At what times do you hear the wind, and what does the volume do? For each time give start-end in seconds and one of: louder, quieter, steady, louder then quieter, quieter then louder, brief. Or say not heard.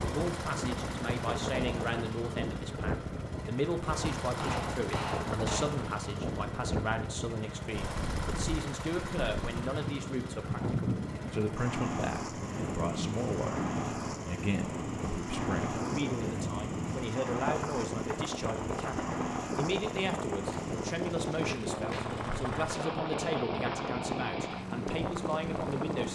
0.0-26.1 steady.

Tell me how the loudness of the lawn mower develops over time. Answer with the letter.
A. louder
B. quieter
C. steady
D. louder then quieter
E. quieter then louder
C.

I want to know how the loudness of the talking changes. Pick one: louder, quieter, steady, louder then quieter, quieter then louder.
steady.